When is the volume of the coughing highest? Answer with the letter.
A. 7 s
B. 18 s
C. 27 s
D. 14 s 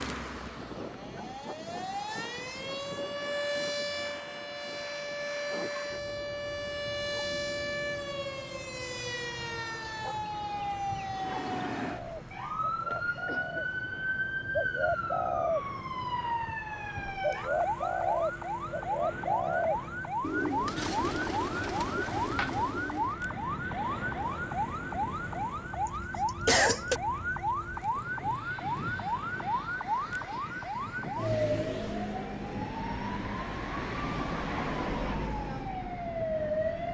C.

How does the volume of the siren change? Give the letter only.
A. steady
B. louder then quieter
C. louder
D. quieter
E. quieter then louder
A.